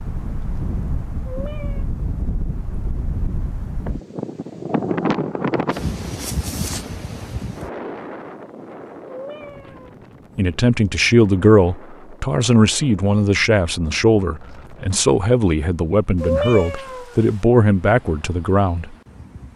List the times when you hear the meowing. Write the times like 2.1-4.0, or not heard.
1.2-1.9, 9.1-9.9, 16.2-17.4.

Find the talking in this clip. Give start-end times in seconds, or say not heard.
10.3-18.9.